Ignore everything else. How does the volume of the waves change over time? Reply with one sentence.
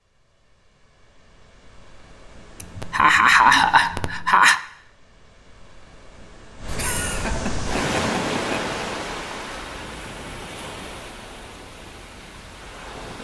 The volume of the waves goes up, then down.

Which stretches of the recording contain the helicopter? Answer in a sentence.
You can't hear the helicopter here.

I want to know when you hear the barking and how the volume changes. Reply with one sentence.
You can't hear the barking here.